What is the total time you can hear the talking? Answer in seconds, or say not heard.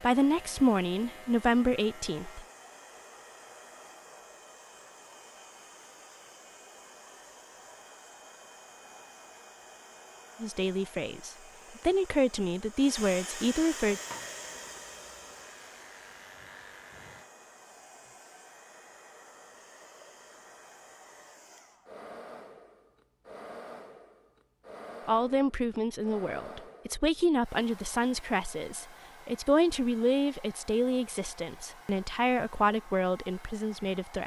15 s.